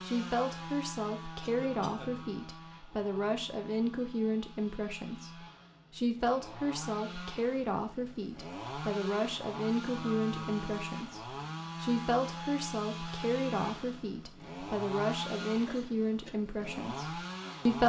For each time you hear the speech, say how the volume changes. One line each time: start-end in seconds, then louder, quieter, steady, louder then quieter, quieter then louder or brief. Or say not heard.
0.0-17.8 steady.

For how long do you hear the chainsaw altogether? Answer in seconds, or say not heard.
18 s.